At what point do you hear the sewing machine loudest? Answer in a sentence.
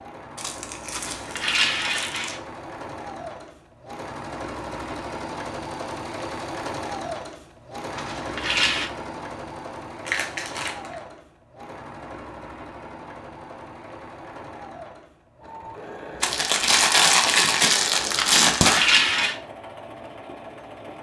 The loudest moment of the sewing machine is at 7 seconds.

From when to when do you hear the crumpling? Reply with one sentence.
The crumpling can be heard from 0.3 to 2.4 s, from 10.1 to 10.9 s and from 16.2 to 18.9 s.